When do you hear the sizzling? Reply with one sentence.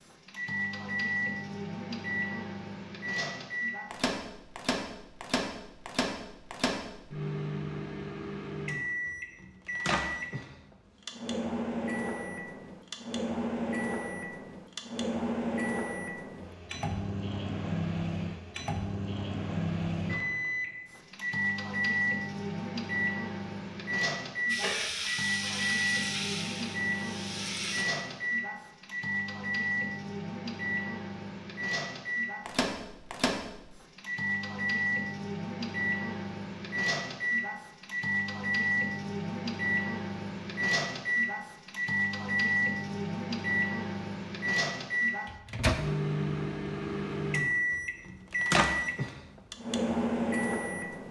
The sizzling can be heard from 24.4 to 27.9 s.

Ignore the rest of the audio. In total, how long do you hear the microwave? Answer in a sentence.
The microwave can be heard for 51 seconds in total.